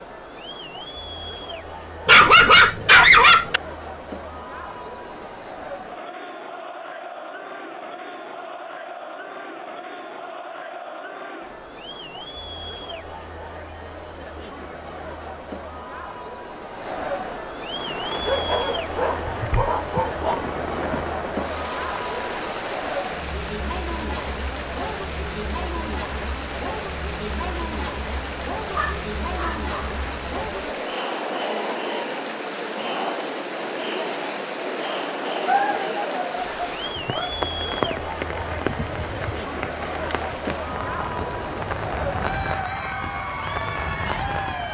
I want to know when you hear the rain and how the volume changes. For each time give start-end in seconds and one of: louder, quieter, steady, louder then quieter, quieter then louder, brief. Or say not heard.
17.6-44.6 steady.